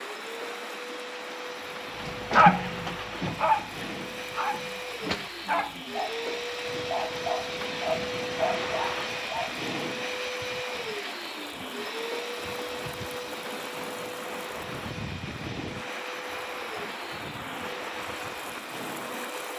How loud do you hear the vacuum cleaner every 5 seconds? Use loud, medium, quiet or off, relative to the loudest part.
medium, loud, loud, medium.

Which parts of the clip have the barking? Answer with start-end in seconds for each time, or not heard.
2.0-9.6.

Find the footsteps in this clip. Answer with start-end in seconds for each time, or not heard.
not heard.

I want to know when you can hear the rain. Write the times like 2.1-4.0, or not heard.
0.0-19.5.